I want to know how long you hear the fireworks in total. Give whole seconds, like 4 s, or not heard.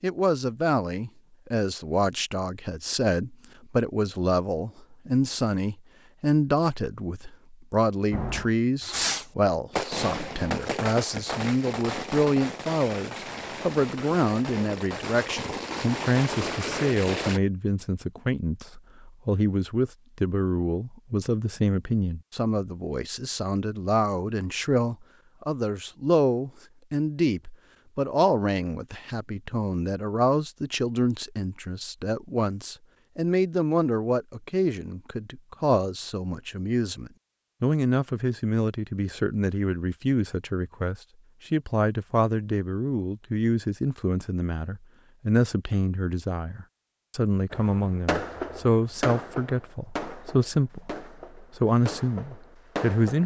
15 s.